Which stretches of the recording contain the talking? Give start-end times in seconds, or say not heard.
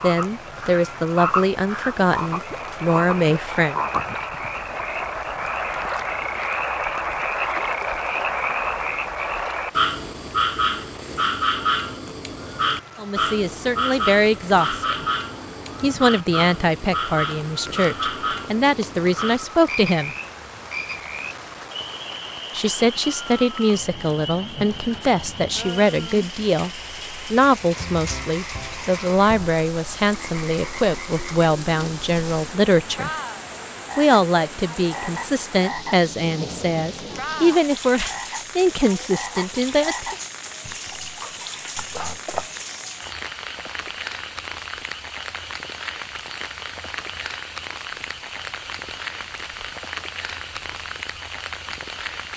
0.0-3.8, 12.9-15.1, 15.8-20.1, 22.6-33.1, 34.0-40.1.